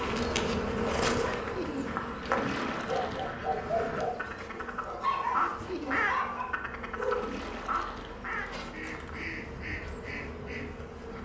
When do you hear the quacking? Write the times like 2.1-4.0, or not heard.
1.9-11.1.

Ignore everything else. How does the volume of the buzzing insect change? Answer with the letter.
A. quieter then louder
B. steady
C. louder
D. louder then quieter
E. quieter
E.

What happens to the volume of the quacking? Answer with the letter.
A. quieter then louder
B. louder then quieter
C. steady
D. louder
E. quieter
B.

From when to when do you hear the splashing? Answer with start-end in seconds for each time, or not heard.
2.2-3.4, 7.0-8.3.